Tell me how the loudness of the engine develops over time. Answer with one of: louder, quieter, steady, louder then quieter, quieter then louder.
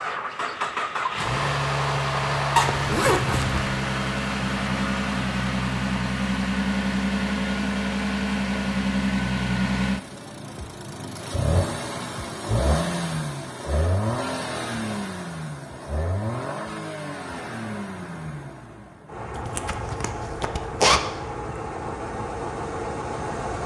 quieter.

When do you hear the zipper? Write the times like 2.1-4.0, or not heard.
2.5-3.6, 19.4-21.0.